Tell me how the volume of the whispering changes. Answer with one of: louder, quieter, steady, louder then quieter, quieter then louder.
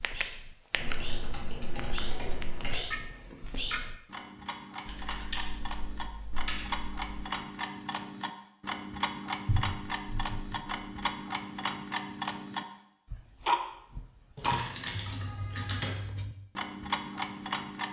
louder then quieter.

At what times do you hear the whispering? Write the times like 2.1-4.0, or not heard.
0.0-4.0.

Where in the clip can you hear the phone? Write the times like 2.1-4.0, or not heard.
not heard.